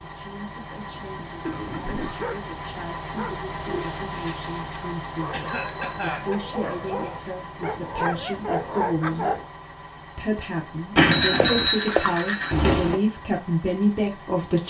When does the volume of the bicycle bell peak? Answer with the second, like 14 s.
11 s.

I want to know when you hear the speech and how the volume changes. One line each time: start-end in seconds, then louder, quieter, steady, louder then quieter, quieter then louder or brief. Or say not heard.
0.0-9.3 louder
10.2-14.6 louder.